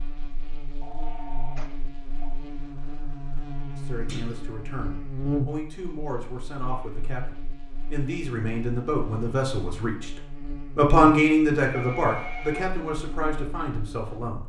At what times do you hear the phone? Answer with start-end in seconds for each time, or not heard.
0.8-2.4, 11.7-12.7.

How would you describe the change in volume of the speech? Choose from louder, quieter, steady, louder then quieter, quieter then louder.
louder then quieter.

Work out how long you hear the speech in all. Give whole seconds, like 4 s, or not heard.
11 s.